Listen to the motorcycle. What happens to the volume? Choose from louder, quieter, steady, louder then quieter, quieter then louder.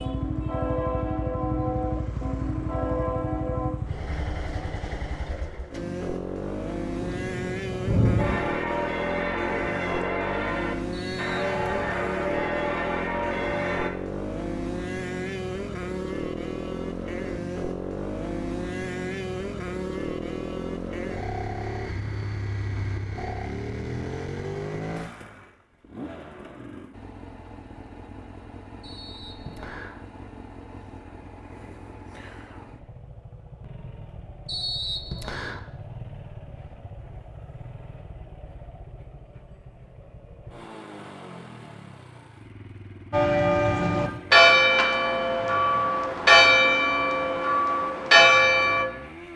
quieter.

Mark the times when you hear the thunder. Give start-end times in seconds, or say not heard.
7.0-8.4.